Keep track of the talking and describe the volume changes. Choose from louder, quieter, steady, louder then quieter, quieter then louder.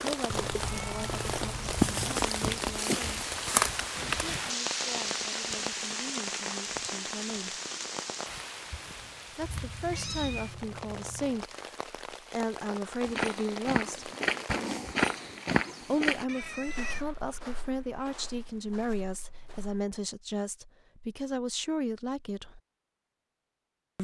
louder.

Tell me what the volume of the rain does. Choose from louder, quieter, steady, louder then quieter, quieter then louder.
quieter.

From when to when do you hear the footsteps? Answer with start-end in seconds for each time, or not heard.
13.0-19.9.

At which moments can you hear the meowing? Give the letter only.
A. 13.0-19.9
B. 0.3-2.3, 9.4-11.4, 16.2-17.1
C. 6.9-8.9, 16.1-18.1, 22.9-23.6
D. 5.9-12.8
B.